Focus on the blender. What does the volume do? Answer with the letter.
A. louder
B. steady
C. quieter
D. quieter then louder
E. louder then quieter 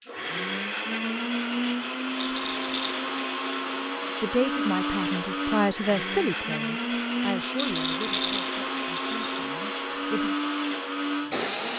B.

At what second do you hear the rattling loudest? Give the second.
8 s.